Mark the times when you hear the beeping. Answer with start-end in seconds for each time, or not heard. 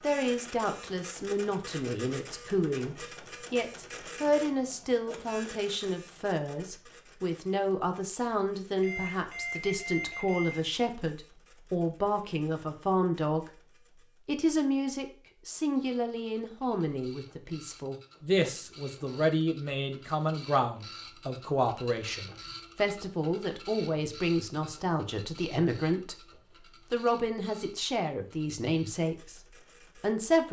8.8-10.6.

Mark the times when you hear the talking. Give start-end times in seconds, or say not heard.
0.0-26.1, 26.9-30.4.